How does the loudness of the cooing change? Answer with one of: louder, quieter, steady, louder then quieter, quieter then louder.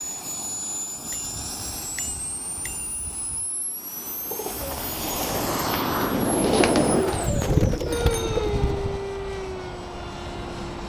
louder.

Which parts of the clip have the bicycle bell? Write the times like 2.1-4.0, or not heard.
1.1-3.5, 7.2-9.0.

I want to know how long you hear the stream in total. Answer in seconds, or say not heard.
not heard.